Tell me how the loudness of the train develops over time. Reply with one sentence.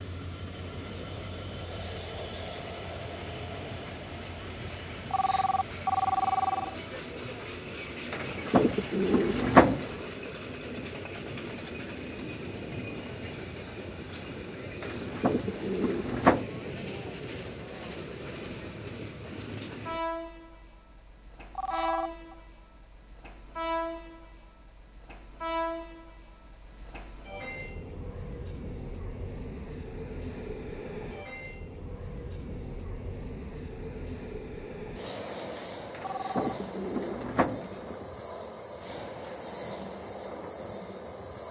The loudness of the train stays about the same.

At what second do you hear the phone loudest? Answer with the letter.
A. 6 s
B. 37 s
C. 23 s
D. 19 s
A.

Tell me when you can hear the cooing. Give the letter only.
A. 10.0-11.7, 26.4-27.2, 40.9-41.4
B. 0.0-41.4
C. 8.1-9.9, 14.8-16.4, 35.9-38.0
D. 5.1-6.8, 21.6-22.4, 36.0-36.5
C.